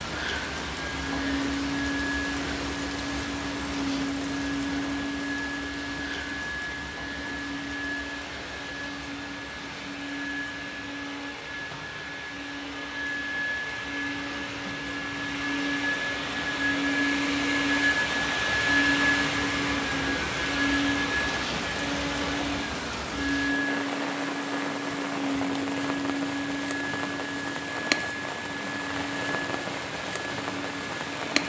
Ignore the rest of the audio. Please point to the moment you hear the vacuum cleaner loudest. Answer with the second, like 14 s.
19 s.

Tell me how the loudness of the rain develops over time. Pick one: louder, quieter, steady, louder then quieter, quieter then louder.
quieter then louder.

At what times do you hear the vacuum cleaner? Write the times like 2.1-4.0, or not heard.
0.0-31.4.